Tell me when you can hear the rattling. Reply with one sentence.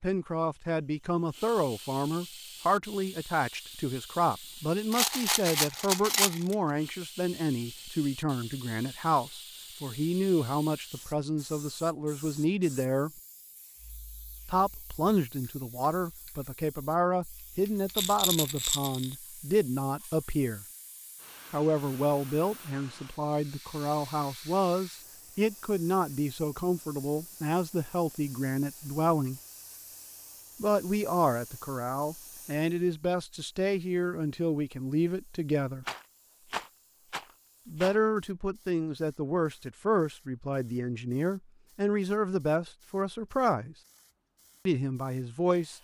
You can hear the rattling from 4.9 to 6.5 s, from 17.9 to 19.1 s and from 35.8 to 38.0 s.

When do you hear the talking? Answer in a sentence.
The talking can be heard from 0.0 to 13.2 s, from 14.4 to 20.6 s, from 21.5 to 29.4 s, from 30.6 to 35.9 s, from 37.6 to 43.8 s and from 44.6 to 45.8 s.